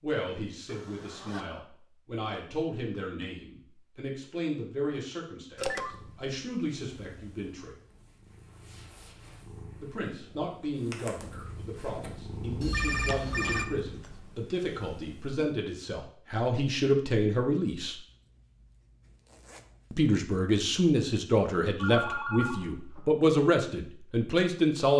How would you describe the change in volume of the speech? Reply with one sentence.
The loudness of the speech goes up.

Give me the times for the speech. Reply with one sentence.
You can hear the speech from 0.0 to 7.8 s, from 9.8 to 17.9 s and from 19.9 to 24.9 s.